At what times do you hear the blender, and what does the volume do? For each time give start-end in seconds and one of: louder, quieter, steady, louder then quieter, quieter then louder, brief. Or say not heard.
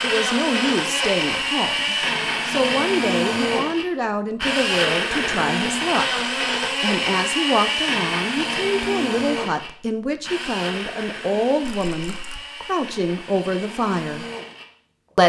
0.0-15.2 quieter.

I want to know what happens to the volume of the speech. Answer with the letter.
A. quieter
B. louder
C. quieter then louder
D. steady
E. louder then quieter
D.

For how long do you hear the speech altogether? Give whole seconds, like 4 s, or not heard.
14 s.